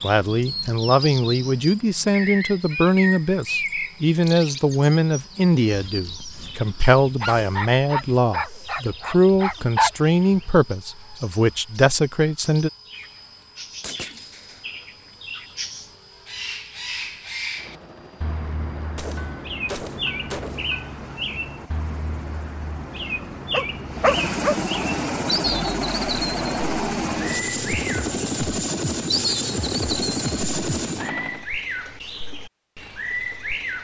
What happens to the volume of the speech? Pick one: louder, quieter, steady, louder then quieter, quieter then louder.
steady.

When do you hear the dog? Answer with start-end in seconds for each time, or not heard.
7.2-9.9, 23.5-24.6.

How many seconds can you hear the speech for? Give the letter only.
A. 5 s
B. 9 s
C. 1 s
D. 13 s
D.